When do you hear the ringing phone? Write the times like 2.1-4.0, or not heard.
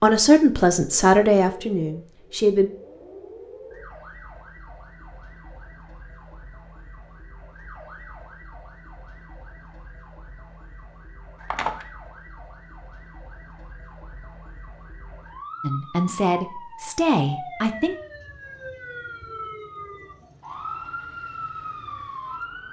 11.4-11.8.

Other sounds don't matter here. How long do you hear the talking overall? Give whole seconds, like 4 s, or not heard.
5 s.